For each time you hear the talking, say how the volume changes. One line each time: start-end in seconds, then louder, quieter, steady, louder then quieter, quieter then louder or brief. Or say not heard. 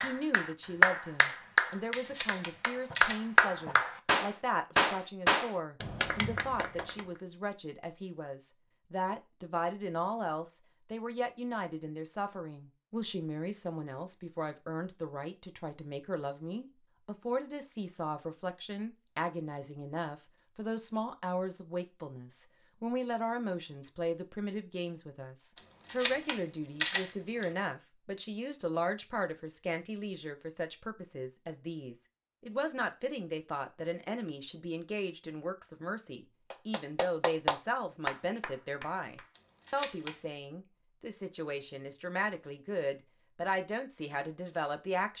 0.0-45.1 steady.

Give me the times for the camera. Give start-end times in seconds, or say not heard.
1.9-3.3, 25.8-27.4, 39.4-40.2.